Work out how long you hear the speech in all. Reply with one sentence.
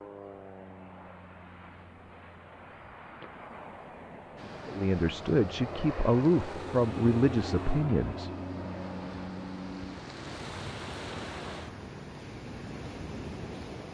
The speech can be heard for 4 seconds in total.